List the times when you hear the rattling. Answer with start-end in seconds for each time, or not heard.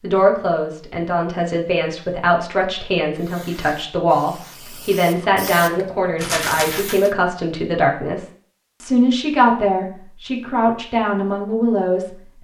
6.2-7.1.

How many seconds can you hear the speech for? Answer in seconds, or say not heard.
12 s.